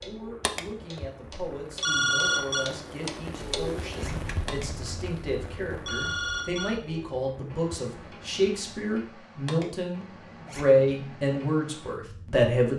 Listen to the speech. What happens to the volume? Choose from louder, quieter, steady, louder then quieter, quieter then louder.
louder.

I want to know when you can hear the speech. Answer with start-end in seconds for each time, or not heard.
0.0-12.7.